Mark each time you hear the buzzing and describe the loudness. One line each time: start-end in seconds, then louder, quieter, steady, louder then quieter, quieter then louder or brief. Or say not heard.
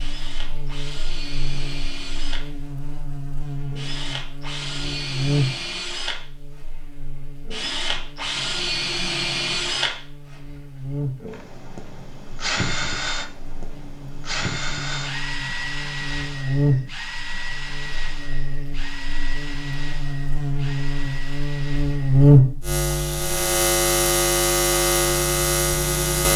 0.0-26.3 quieter then louder.